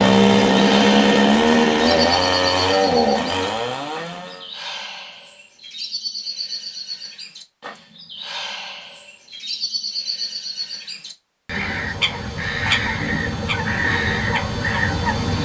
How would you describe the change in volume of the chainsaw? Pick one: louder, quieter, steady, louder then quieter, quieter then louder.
quieter.